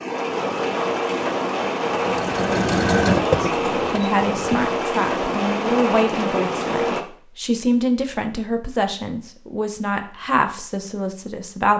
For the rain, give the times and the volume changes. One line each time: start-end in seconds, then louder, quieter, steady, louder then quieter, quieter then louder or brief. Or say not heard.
0.0-7.0 steady.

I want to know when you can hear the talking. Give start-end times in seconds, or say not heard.
3.4-11.7.